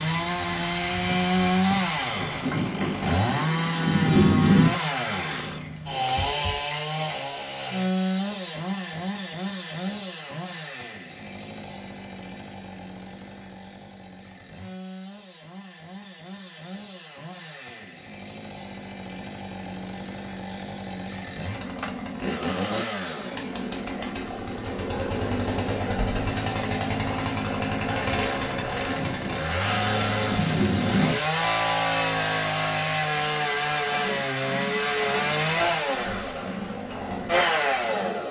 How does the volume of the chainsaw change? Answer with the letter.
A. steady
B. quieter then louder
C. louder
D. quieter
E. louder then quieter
B.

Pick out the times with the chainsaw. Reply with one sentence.
You can hear the chainsaw from 0.0 to 38.2 s.